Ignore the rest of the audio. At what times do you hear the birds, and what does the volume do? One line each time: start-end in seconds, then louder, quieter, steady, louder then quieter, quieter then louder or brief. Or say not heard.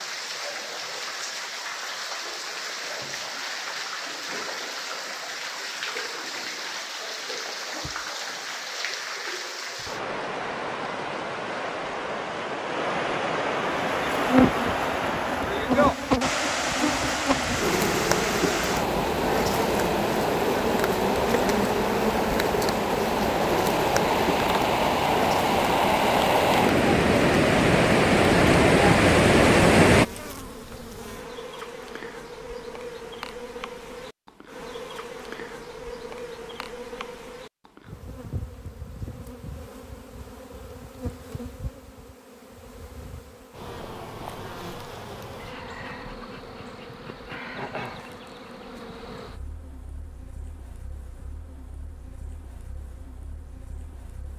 not heard.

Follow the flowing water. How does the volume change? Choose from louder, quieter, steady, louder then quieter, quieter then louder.
louder.